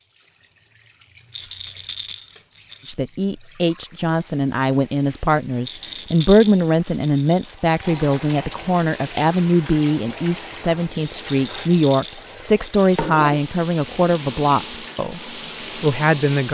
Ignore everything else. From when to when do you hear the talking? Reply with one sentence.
The talking can be heard from 2.9 to 16.4 s.